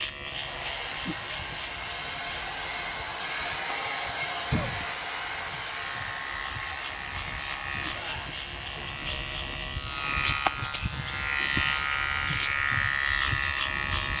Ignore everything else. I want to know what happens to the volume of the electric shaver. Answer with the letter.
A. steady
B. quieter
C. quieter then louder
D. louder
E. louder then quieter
D.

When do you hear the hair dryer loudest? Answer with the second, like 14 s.
4 s.